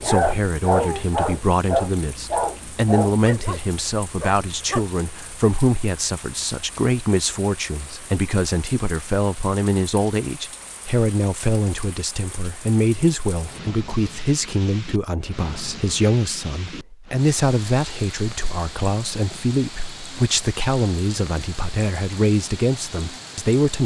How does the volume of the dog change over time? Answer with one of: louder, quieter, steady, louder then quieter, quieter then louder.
quieter.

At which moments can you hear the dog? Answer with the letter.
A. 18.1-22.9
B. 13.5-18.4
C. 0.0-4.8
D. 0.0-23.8
C.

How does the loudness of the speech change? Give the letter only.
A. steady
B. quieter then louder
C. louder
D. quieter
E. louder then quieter
A.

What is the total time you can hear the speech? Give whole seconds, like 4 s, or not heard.
24 s.